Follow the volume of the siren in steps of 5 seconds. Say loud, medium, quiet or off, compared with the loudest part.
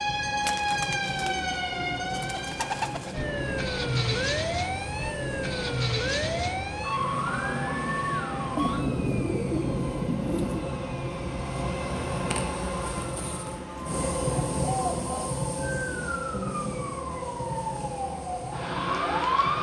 loud, loud, medium, loud.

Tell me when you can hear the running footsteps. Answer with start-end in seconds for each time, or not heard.
not heard.